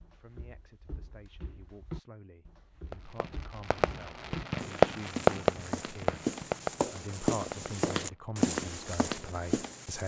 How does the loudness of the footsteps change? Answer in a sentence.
The volume of the footsteps goes up.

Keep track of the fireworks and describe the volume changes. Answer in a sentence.
The volume of the fireworks goes up, then down.